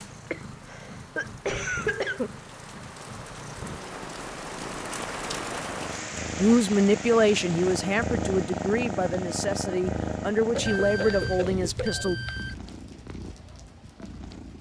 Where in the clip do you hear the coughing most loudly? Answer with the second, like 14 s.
2 s.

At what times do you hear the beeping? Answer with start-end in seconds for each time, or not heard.
10.6-12.6.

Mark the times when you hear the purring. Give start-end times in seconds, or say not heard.
0.0-14.5.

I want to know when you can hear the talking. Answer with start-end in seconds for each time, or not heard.
6.3-12.2.